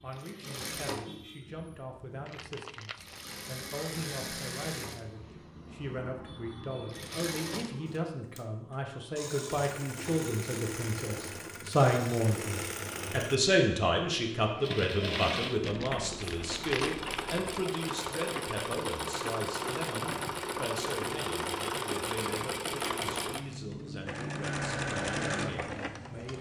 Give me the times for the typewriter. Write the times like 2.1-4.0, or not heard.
not heard.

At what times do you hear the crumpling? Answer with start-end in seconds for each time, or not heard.
2.2-3.4, 15.6-17.5.